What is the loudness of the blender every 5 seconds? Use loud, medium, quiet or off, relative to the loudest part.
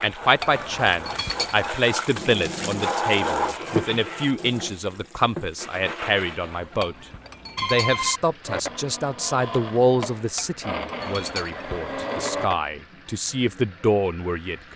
off, loud, loud.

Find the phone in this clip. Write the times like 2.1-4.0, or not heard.
0.6-1.5, 6.4-8.2, 11.0-11.9.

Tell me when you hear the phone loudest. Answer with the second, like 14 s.
8 s.